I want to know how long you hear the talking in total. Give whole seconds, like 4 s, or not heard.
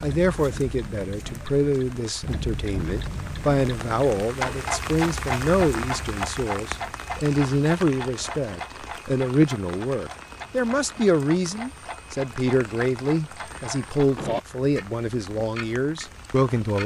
17 s.